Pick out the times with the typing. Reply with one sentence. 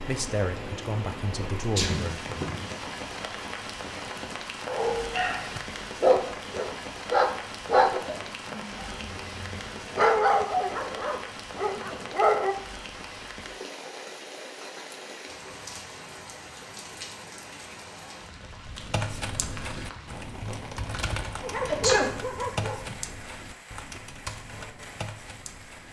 The typing can be heard from 18.7 to 25.8 s.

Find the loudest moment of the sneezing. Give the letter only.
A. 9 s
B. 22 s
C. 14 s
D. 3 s
B.